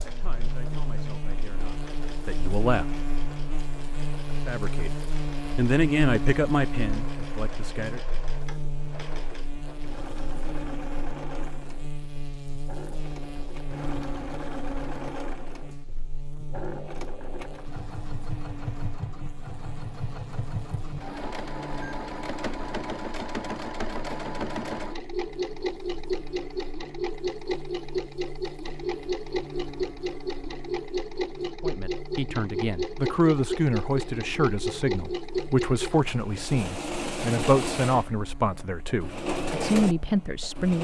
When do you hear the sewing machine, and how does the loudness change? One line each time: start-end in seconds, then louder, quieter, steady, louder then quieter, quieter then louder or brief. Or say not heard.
0.0-40.7 louder.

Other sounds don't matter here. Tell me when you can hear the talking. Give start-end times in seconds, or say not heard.
0.0-2.9, 4.5-4.9, 5.5-8.0, 31.6-40.7.